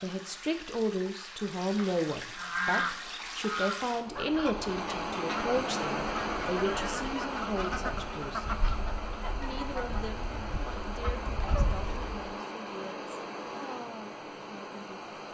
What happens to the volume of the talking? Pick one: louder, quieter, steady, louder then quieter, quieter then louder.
quieter.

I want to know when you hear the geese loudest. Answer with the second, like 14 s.
3 s.